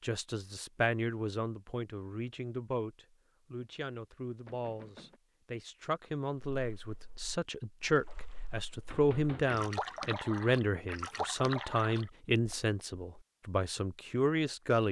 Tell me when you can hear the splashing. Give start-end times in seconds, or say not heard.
6.5-12.7.